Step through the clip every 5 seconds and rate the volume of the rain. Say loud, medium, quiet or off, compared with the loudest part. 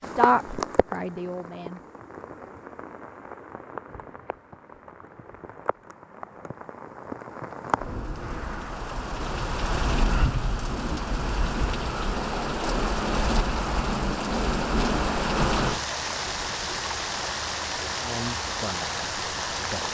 medium, medium, loud, loud.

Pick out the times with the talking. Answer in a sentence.
You can hear the talking from 0.0 to 1.8 s and from 17.9 to 19.8 s.